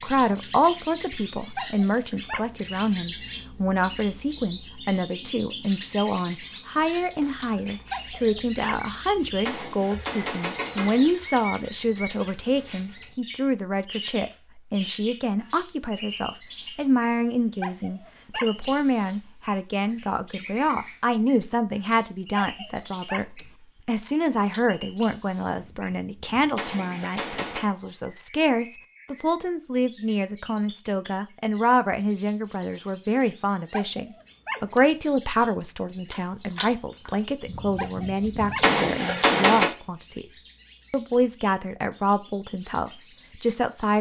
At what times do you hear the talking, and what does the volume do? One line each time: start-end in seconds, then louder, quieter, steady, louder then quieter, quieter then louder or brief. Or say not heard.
0.0-43.9 steady.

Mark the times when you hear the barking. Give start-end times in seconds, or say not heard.
1.6-2.6, 7.9-8.9, 17.6-18.8, 22.4-23.5, 33.7-34.9, 37.8-38.7.